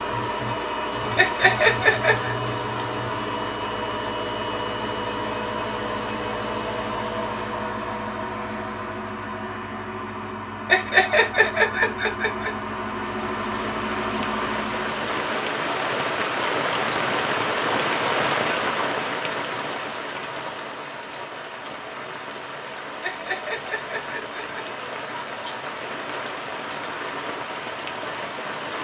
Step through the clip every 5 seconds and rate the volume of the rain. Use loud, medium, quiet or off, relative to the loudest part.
off, off, medium, loud, medium, medium.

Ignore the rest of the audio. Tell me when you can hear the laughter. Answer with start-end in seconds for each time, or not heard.
1.1-2.4, 10.7-12.5, 23.0-24.6.